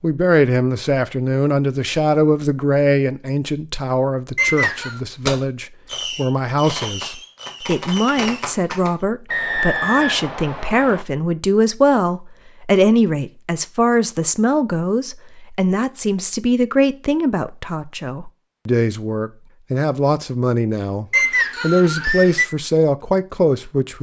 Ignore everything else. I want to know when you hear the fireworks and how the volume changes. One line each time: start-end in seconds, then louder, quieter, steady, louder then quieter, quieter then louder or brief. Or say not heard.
4.6-8.9 quieter then louder.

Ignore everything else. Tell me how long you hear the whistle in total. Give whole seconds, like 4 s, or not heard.
4 s.